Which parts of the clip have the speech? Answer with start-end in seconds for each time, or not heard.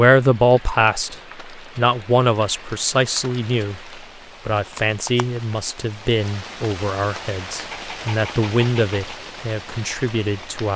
0.0-10.7.